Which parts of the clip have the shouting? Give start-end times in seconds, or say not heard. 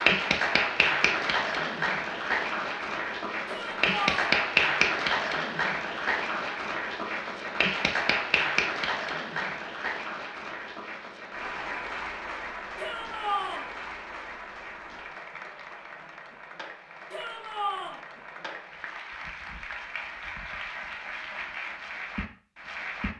3.5-4.2, 12.8-13.7, 17.1-18.0.